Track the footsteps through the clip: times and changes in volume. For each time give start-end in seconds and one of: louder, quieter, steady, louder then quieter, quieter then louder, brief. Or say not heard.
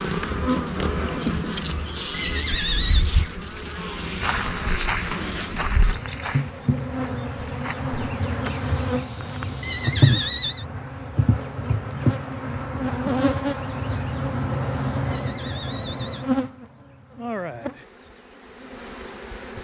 4.0-10.3 quieter then louder.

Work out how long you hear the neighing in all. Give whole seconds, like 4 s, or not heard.
3 s.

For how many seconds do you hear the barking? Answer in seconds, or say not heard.
not heard.